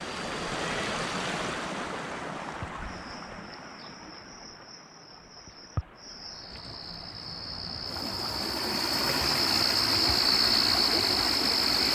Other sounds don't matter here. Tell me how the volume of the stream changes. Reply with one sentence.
The volume of the stream goes down, then up.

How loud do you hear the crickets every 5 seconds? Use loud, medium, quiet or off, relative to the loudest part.
quiet, medium, loud.